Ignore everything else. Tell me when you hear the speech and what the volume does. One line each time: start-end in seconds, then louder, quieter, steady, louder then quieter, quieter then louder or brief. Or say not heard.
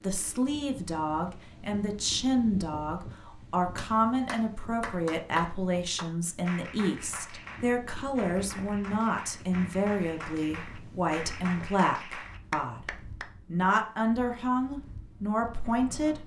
0.0-12.8 steady
13.5-16.2 brief.